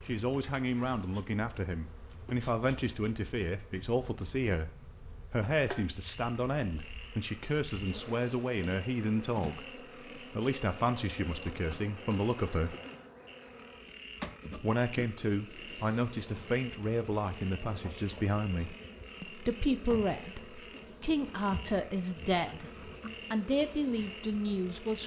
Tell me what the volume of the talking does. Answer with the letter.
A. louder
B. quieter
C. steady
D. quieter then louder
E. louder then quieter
C.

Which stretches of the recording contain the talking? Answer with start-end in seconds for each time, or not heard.
0.1-4.7, 5.3-12.8, 14.6-25.0.